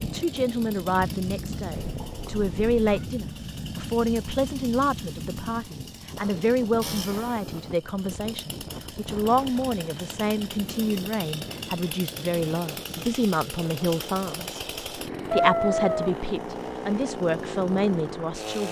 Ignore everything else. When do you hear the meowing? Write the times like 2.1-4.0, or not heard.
1.8-3.0, 15.2-16.2.